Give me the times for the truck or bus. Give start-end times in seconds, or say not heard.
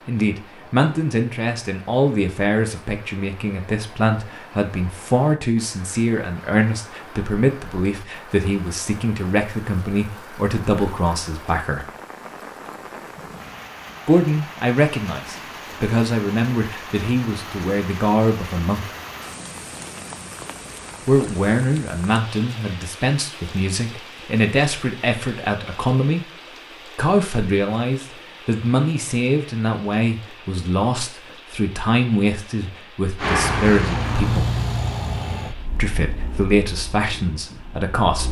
33.1-38.2.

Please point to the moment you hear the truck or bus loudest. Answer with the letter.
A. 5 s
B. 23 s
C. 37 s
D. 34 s
D.